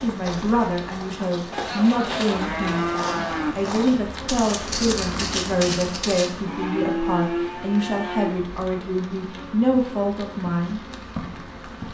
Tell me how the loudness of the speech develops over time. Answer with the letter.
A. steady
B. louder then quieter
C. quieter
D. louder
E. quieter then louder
A.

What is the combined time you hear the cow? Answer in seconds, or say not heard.
4 s.